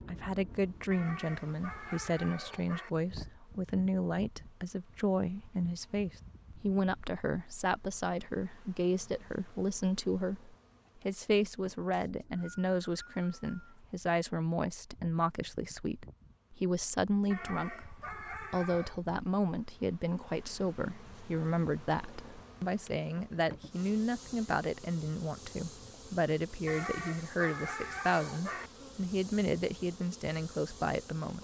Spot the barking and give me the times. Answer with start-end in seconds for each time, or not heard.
0.9-2.9, 17.3-19.0, 26.6-28.7.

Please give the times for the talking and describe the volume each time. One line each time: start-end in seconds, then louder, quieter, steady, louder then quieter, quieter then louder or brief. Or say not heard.
0.1-31.3 steady.